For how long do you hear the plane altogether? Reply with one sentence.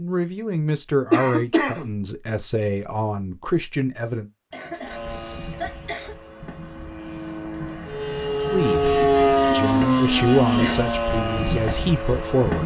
You can hear the plane for 8 seconds altogether.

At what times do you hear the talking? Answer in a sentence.
You can hear the talking from 0.0 to 4.3 s and from 8.5 to 12.6 s.